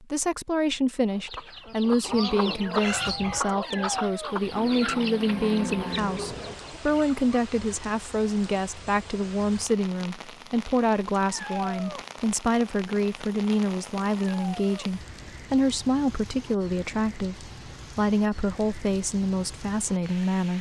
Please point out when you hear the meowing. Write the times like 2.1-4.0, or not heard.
3.5-4.3, 11.2-12.0, 14.2-14.9.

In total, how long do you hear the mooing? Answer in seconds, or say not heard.
2 s.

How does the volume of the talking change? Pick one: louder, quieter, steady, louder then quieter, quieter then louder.
steady.